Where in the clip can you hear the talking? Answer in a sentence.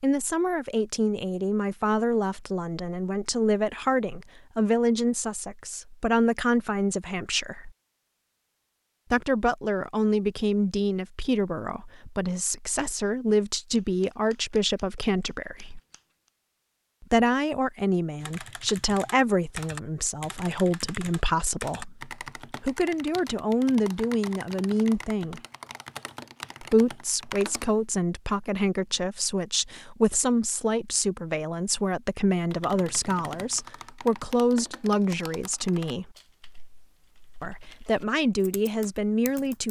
You can hear the talking from 0.0 to 7.7 s, from 9.1 to 15.8 s, from 17.0 to 25.4 s, from 26.6 to 36.1 s and from 37.4 to 39.6 s.